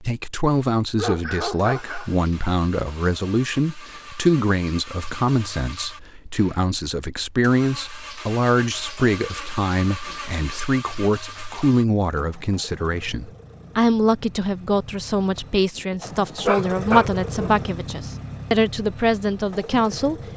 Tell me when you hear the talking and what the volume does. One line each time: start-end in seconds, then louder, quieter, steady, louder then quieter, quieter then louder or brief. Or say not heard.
0.0-20.2 steady.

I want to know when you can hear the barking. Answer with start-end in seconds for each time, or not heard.
0.9-2.1, 16.4-17.6.